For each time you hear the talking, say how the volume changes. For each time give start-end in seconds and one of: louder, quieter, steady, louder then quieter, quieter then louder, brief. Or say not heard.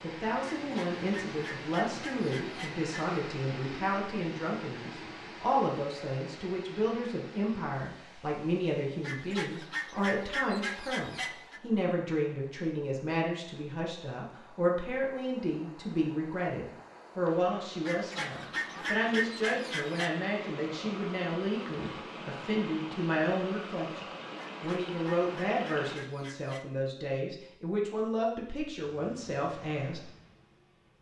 0.0-30.1 steady.